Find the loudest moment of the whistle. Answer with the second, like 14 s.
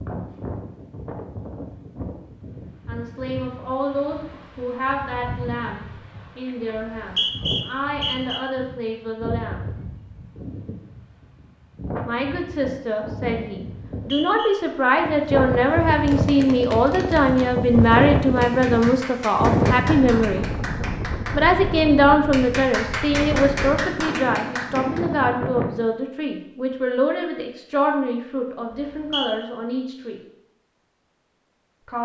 7 s.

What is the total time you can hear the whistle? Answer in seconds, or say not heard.
3 s.